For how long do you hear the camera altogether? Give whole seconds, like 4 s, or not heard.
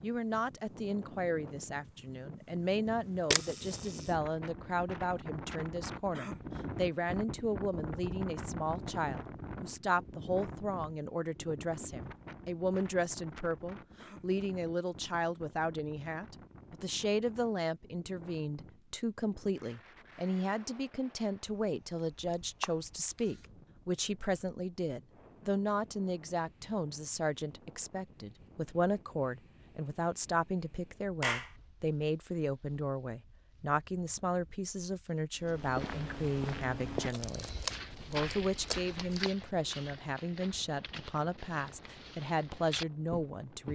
4 s.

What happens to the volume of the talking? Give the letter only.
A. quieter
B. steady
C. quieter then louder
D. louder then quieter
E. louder
B.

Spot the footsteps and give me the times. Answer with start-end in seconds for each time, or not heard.
35.4-43.6.